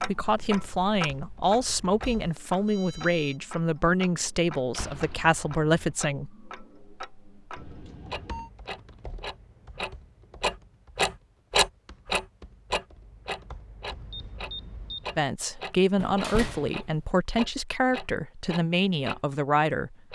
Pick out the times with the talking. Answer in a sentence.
The talking can be heard from 0.0 to 6.3 s and from 15.2 to 20.1 s.